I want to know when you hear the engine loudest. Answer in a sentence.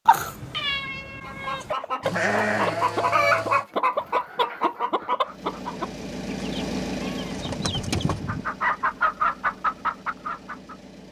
The loudest moment of the engine is at 7 seconds.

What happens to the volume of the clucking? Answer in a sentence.
The loudness of the clucking goes down, then up.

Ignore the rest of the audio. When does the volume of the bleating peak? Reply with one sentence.
The loudest moment of the bleating is at 2 seconds.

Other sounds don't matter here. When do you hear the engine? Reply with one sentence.
The engine can be heard from 5.2 to 11.0 s.